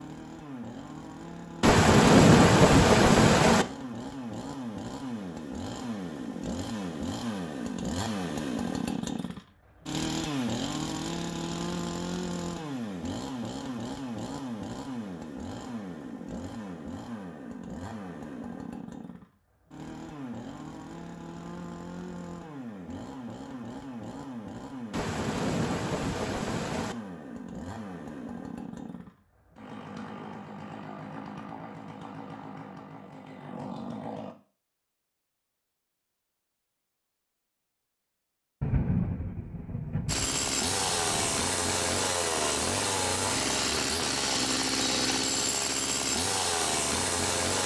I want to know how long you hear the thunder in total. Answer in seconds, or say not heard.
7 s.